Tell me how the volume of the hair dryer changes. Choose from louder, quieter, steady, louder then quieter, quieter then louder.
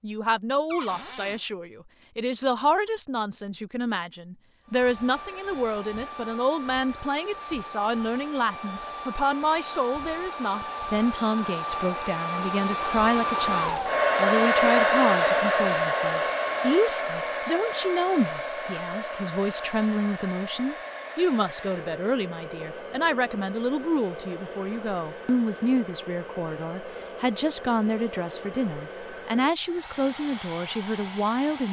louder then quieter.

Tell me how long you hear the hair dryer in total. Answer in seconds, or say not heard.
27 s.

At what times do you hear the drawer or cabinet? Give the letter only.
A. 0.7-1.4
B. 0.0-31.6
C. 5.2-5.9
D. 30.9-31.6
A.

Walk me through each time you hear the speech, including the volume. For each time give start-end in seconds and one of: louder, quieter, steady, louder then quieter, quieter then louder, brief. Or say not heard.
0.0-31.6 steady.